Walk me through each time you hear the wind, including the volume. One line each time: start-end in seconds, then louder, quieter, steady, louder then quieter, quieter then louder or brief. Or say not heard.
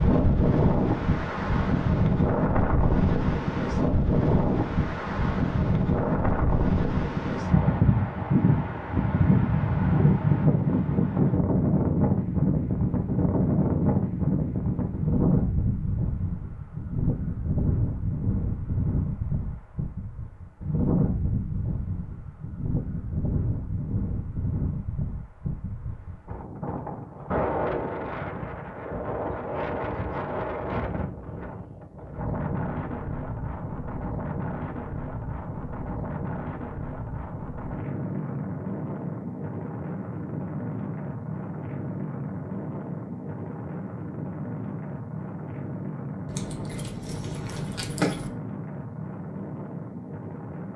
0.0-50.7 quieter.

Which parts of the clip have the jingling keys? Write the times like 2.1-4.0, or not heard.
46.2-48.3.